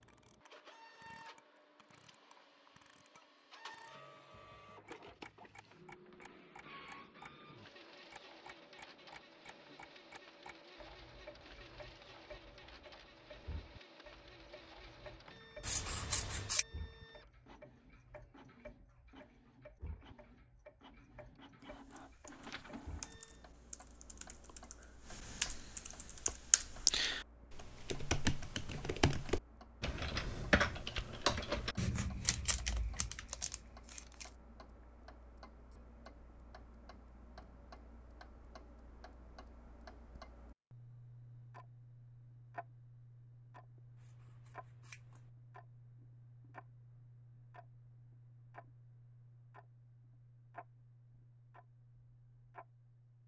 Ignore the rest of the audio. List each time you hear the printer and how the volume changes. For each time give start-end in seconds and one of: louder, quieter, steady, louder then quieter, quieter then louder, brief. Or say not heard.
0.0-23.5 steady.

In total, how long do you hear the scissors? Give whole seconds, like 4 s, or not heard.
2 s.